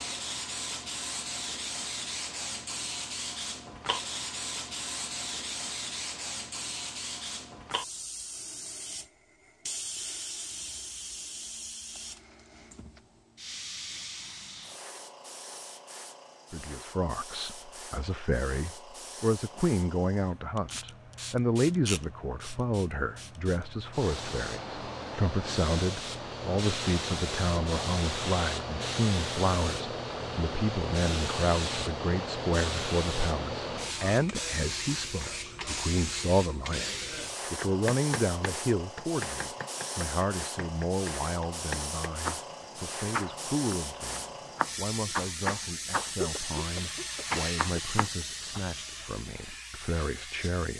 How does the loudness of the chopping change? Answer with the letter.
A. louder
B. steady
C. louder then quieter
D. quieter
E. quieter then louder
A.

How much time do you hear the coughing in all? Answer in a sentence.
You can hear the coughing for 2 seconds altogether.